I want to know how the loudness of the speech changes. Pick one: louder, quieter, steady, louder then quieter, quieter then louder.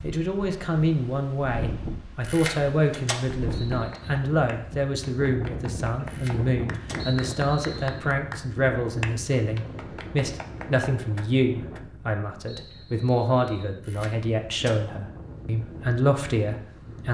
steady.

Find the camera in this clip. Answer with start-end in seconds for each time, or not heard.
2.2-3.2, 6.0-7.0, 13.8-14.8.